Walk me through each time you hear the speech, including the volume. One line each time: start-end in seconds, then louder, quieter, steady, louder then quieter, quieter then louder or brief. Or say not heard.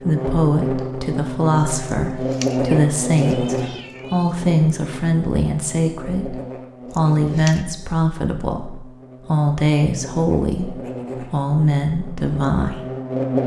0.0-12.8 steady.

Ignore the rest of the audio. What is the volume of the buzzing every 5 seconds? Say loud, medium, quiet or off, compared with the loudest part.
loud, medium, loud.